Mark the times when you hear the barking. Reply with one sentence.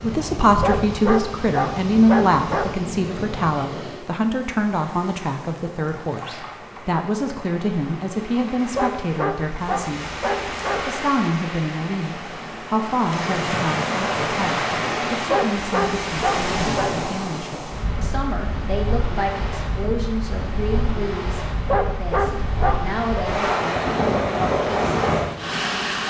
You can hear the barking from 0.6 to 2.9 s, from 8.7 to 10.9 s, from 15.2 to 16.9 s and from 21.6 to 23.0 s.